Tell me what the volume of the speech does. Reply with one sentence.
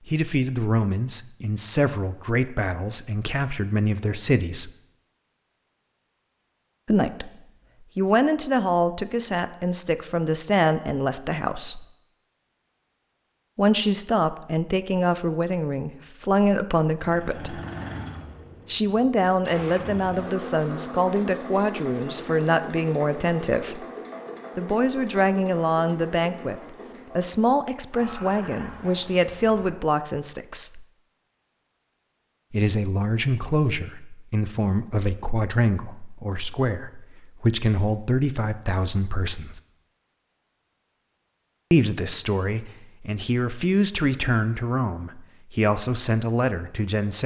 The loudness of the speech stays about the same.